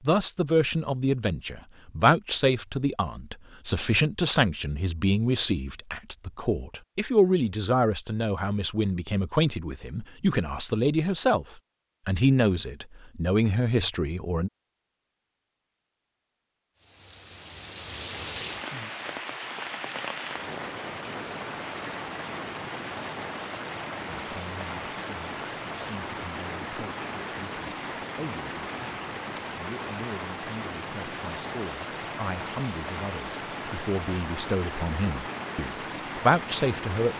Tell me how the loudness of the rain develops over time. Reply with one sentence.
The loudness of the rain stays about the same.